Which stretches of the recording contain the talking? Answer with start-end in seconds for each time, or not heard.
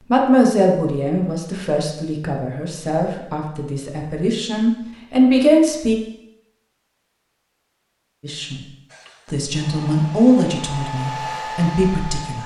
0.1-6.0, 8.2-8.6, 9.2-12.4.